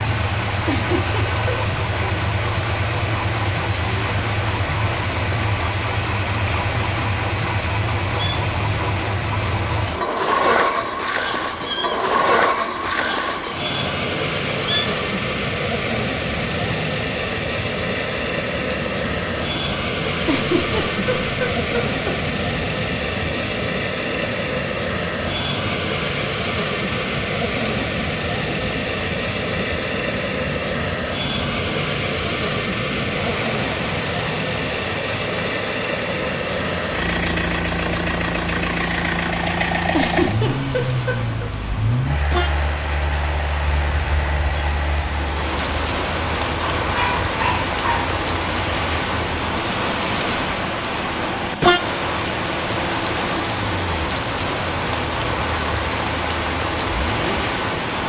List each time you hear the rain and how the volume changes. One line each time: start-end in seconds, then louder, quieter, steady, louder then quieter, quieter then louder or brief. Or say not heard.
0.0-58.0 louder.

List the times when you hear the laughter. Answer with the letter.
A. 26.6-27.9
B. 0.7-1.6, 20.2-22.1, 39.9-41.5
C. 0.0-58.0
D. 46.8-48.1
B.